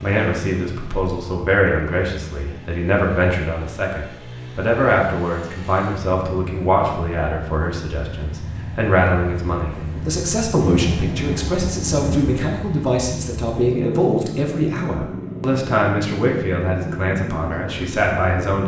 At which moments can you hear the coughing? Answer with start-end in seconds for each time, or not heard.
not heard.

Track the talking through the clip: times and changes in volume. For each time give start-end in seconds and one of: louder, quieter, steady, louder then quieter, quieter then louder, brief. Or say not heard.
0.0-18.6 steady.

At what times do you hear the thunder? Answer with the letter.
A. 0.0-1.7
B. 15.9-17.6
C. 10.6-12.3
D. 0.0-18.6
C.